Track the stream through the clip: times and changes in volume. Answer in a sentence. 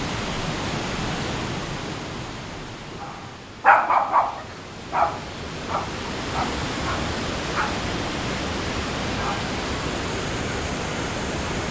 The stream can be heard from 0.0 to 11.6 s, getting quieter then louder.